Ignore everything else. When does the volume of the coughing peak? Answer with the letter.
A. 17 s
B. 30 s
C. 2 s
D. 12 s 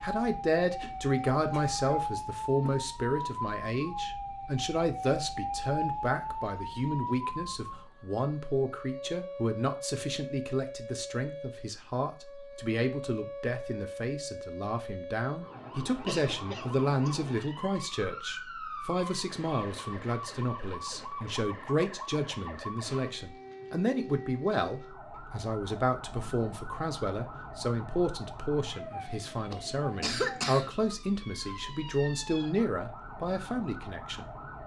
B.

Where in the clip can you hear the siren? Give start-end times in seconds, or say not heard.
0.0-34.6.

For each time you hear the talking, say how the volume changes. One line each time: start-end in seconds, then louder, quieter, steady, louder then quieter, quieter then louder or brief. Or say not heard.
0.0-34.6 steady.